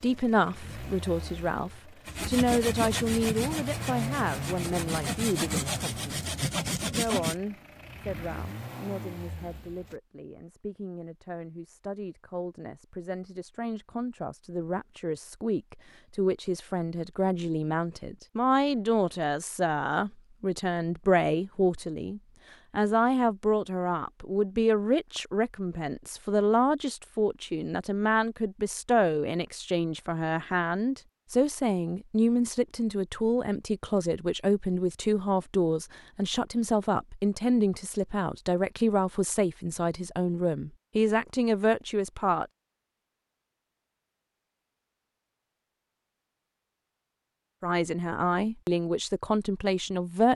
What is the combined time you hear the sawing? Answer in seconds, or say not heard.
5 s.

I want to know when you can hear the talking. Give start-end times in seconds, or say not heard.
0.0-42.5, 47.6-50.3.